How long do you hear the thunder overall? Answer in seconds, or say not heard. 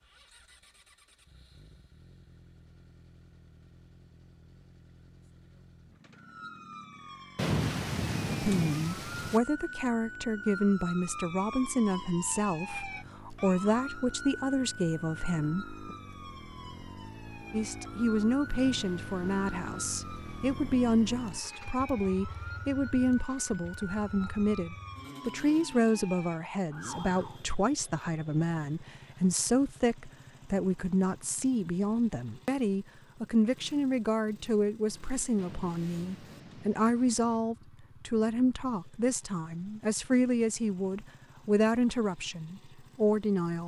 6 s.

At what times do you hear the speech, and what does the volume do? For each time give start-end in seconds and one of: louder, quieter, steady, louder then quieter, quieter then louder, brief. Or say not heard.
8.4-15.8 steady
17.5-43.6 steady.